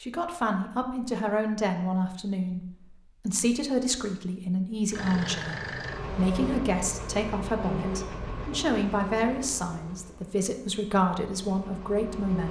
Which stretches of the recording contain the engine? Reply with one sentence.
The engine can be heard from 4.9 to 12.4 s.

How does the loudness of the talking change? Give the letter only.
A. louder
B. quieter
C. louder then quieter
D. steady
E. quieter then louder
D.